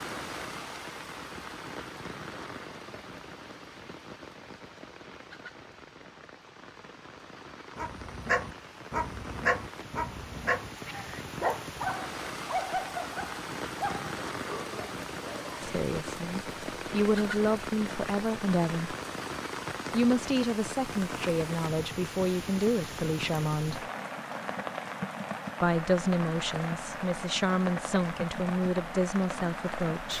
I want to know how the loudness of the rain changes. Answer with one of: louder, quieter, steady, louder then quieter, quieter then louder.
louder.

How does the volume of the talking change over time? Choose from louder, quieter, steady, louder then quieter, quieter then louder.
steady.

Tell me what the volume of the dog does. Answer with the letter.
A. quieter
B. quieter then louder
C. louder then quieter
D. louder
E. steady
A.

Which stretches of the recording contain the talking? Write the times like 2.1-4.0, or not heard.
15.6-18.9, 19.9-23.9, 25.6-30.1.